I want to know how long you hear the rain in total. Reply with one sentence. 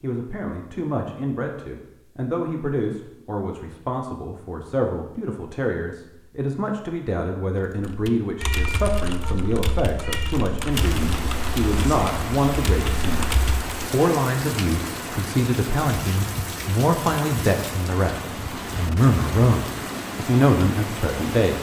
The rain can be heard for 11 seconds in total.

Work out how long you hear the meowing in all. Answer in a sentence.
The meowing can be heard for 2 seconds in total.